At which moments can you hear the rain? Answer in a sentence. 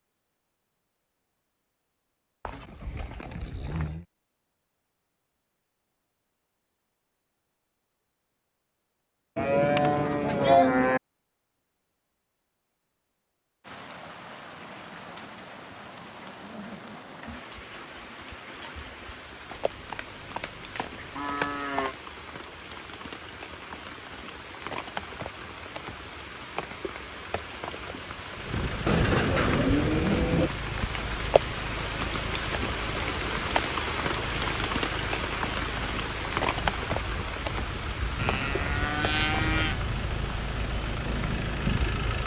You can hear the rain from 13.6 to 42.1 s.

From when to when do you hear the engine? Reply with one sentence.
You can hear the engine from 28.3 to 42.2 s.